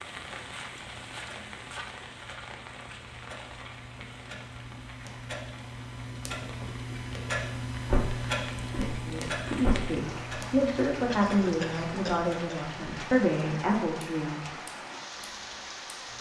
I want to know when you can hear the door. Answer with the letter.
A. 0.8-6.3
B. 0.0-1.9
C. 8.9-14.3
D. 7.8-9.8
D.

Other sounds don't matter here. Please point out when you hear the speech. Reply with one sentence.
You can hear the speech from 8.9 to 14.3 s.